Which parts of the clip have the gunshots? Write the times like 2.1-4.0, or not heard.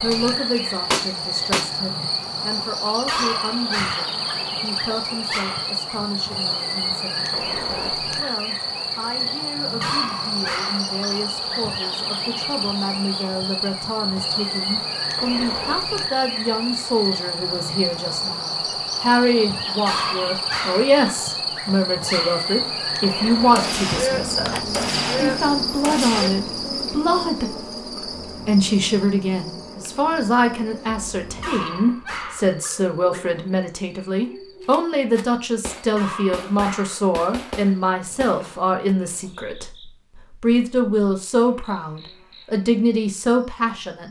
0.1-1.8, 23.6-26.4, 34.7-39.0.